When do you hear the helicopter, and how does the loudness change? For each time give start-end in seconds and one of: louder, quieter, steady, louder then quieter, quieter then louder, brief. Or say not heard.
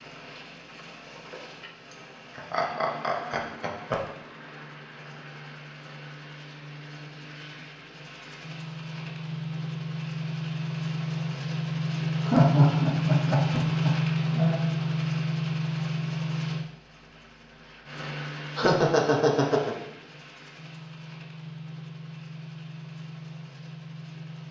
0.0-24.4 louder then quieter.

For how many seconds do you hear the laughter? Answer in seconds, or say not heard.
5 s.